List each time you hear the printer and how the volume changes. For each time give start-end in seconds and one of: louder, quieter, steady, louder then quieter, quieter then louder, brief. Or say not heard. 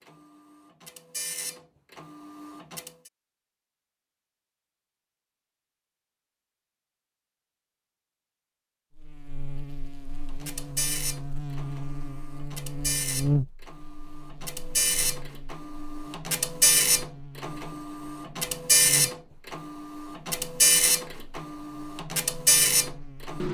0.0-2.9 brief
10.2-23.4 louder.